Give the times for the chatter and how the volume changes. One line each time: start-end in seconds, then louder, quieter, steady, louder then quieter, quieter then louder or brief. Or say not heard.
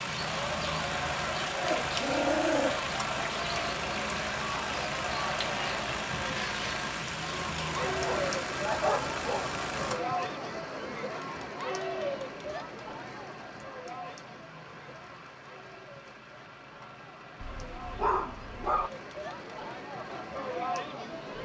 0.1-21.3 quieter then louder.